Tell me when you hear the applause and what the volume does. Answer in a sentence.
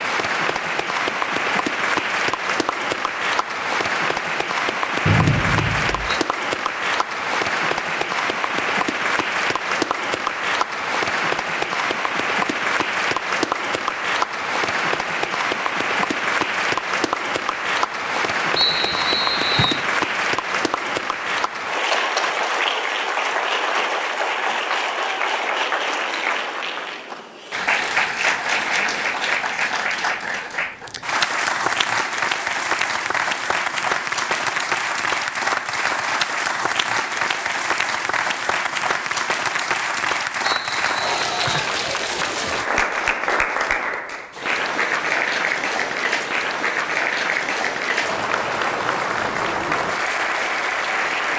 You can hear the applause from 0.0 to 51.3 s, at a steady volume.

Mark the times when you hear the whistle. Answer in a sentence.
You can hear the whistle from 5.0 to 6.2 s, from 18.6 to 19.9 s and from 40.4 to 41.7 s.